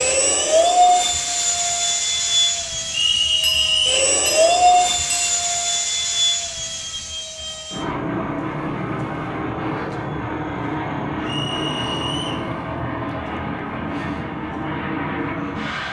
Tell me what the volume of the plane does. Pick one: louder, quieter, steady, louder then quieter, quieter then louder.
quieter.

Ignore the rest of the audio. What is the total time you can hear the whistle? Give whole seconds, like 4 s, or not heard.
2 s.